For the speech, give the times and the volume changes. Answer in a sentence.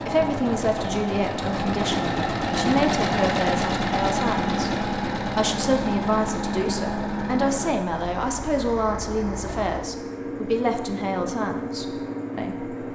The speech can be heard from 0.1 to 12.8 s, at a steady volume.